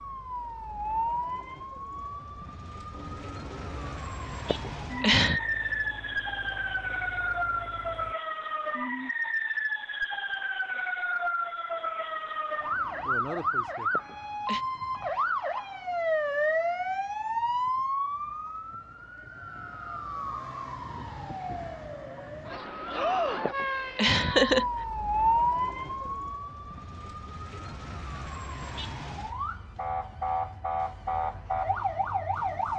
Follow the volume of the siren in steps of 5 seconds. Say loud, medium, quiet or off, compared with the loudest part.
medium, loud, loud, loud, loud, loud, loud.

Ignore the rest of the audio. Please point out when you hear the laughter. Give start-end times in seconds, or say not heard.
4.5-5.4, 13.9-14.7, 23.4-24.6.